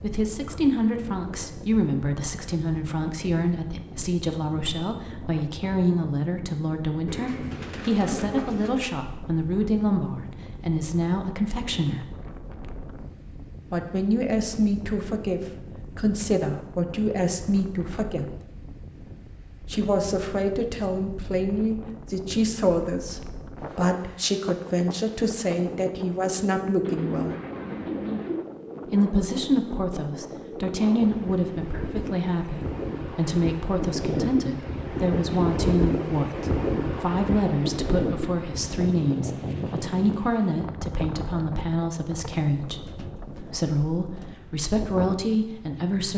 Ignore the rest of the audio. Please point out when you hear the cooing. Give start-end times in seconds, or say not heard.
7.0-8.9, 26.8-28.4.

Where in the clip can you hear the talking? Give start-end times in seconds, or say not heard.
0.0-12.1, 13.7-18.4, 19.7-27.4, 28.9-46.1.